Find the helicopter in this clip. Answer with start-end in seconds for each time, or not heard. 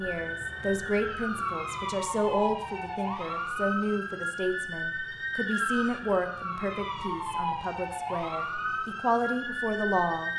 not heard.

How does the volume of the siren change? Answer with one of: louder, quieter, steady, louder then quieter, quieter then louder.
steady.